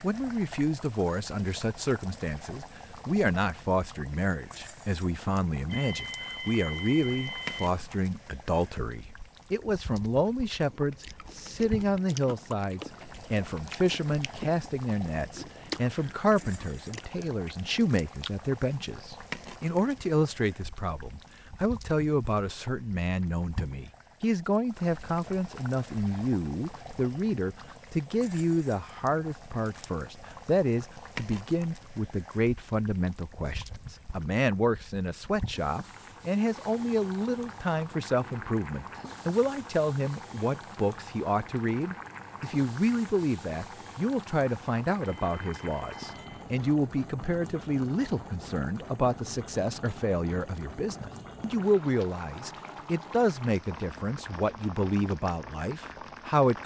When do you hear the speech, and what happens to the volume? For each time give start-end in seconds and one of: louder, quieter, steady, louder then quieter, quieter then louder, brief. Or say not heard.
0.0-56.6 steady.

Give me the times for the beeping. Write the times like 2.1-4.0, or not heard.
5.7-7.7, 45.0-46.5.